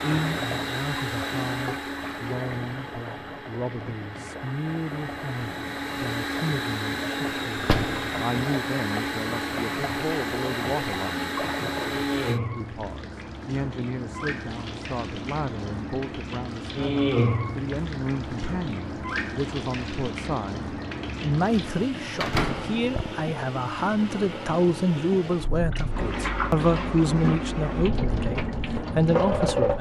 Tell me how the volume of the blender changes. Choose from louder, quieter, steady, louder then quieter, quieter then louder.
quieter then louder.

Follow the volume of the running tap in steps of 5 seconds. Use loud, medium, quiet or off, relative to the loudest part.
medium, medium, medium, loud, medium, loud.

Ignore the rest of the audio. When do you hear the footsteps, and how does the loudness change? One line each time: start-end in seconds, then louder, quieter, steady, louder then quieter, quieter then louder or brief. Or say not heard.
not heard.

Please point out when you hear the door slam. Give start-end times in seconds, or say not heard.
7.5-8.2, 22.2-23.1.